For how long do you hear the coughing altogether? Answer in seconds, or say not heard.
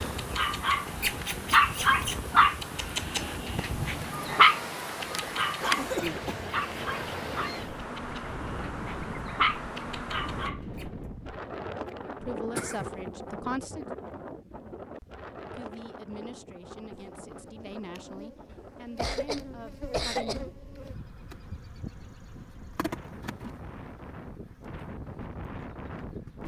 3 s.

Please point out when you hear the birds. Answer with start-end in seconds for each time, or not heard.
not heard.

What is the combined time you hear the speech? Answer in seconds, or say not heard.
7 s.